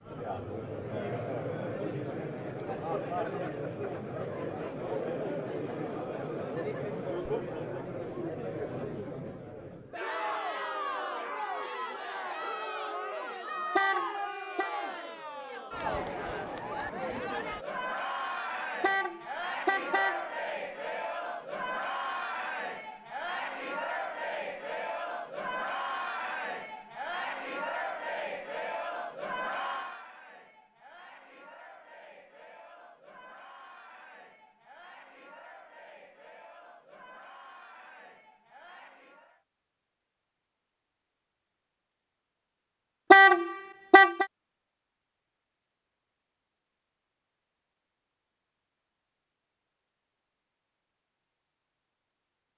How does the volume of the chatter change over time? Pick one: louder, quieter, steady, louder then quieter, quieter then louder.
quieter.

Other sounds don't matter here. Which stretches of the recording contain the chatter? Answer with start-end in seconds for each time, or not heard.
0.0-39.5.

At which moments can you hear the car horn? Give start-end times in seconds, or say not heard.
13.8-14.7, 18.8-20.2, 43.1-44.2.